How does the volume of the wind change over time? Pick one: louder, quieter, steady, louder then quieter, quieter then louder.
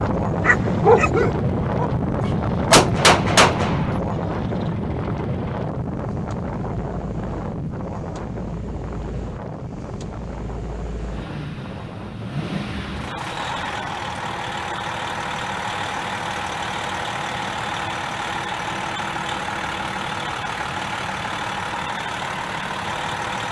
quieter.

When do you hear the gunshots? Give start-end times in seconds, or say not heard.
2.7-4.0.